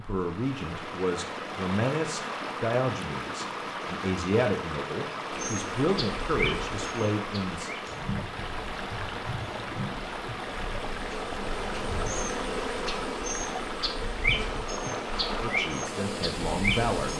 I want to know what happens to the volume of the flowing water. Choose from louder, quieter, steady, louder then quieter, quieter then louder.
steady.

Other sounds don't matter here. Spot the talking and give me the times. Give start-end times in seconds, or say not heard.
0.0-7.7, 15.3-17.1.